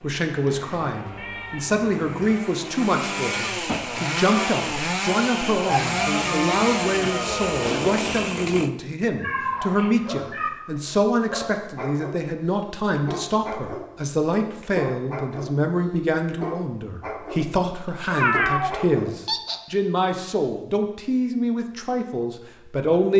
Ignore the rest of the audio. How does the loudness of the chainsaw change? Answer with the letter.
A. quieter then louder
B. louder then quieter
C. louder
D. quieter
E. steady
C.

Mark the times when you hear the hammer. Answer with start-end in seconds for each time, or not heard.
not heard.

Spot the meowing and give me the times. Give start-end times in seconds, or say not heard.
0.4-2.4, 9.2-10.5, 18.1-19.6.